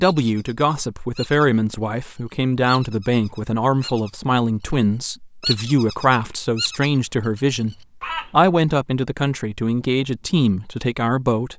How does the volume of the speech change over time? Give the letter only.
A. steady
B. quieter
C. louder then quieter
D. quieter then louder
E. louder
A.